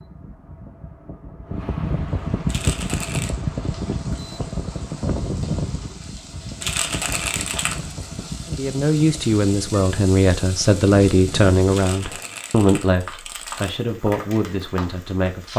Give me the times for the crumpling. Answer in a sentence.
The crumpling can be heard from 2.5 to 3.4 s, from 6.6 to 8.0 s and from 11.7 to 13.7 s.